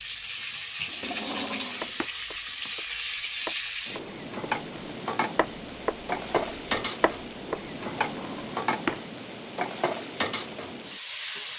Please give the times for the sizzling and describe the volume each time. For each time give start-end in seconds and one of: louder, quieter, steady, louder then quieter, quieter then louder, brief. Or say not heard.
0.0-11.5 steady.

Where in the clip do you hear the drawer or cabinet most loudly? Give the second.
9 s.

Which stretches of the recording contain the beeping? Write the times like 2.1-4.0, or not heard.
not heard.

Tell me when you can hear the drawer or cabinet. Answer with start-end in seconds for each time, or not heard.
0.8-2.1, 7.9-9.1.